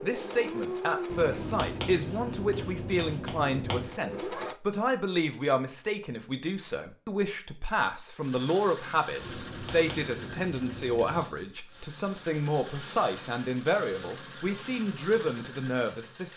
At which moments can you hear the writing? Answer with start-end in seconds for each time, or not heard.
1.1-4.0, 9.2-11.3.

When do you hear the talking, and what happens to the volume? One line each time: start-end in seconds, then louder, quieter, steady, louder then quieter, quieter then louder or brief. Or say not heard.
0.0-16.3 steady.